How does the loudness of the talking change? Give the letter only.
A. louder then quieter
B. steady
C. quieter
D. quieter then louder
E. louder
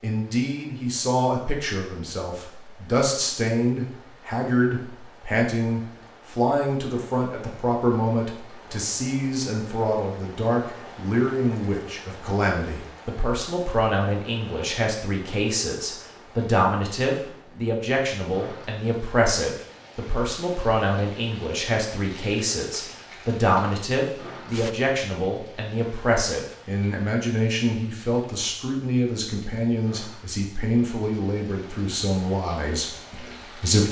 B.